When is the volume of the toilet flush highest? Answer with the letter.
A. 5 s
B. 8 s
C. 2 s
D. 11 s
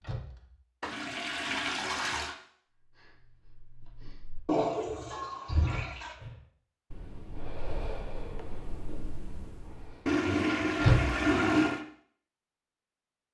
D.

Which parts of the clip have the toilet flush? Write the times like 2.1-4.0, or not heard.
0.8-2.4, 4.5-6.2, 10.1-11.8.